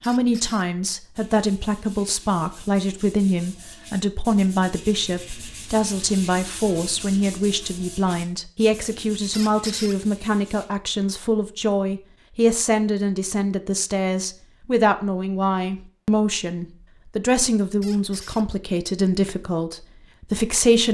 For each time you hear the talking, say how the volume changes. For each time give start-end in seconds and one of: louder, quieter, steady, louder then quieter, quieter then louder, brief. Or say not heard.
0.1-20.8 steady.